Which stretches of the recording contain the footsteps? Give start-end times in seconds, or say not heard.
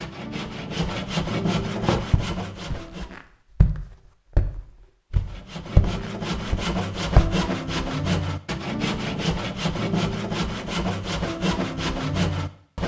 1.8-7.5.